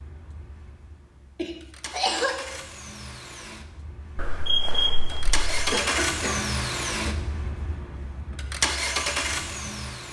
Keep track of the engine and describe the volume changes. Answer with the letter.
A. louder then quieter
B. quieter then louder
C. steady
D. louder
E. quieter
D.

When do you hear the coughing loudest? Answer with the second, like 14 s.
2 s.